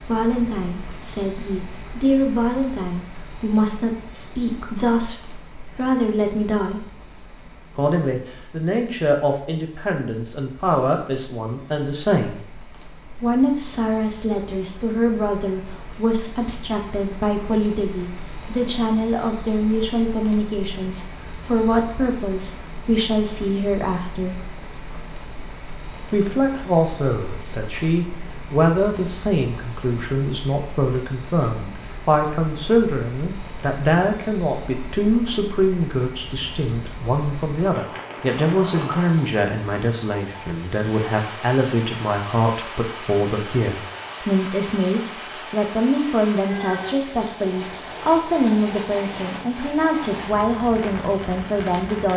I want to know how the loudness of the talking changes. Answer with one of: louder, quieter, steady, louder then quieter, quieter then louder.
steady.